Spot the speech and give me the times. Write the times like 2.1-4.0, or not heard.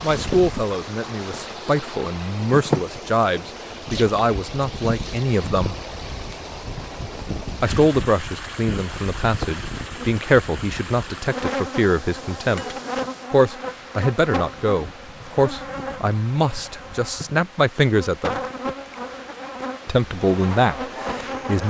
0.0-5.8, 7.6-18.4, 19.9-21.6.